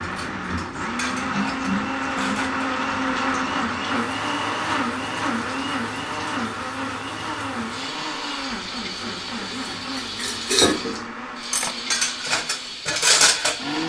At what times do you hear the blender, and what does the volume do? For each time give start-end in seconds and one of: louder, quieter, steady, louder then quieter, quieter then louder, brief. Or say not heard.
0.0-13.8 quieter.